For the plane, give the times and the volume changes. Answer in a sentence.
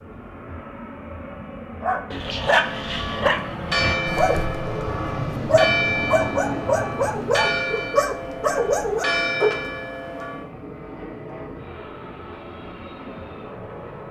You can hear the plane from 0.0 to 14.0 s, getting louder then quieter.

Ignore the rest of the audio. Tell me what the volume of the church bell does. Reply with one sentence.
The volume of the church bell stays about the same.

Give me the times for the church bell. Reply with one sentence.
The church bell can be heard from 2.5 to 10.5 s.